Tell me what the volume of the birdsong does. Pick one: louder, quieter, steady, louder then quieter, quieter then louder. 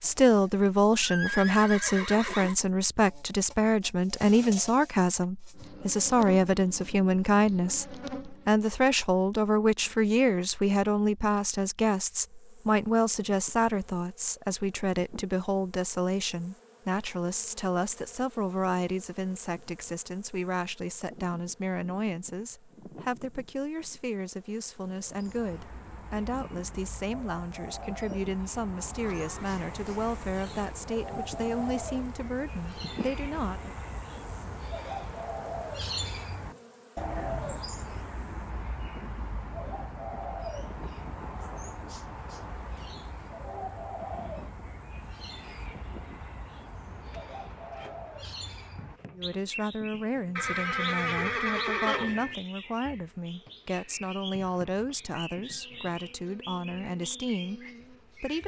louder then quieter.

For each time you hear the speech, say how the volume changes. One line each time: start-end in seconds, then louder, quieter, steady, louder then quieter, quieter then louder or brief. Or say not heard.
0.0-33.8 quieter
49.1-58.4 steady.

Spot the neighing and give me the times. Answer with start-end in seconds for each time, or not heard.
1.0-2.5, 29.0-30.8, 50.4-52.4.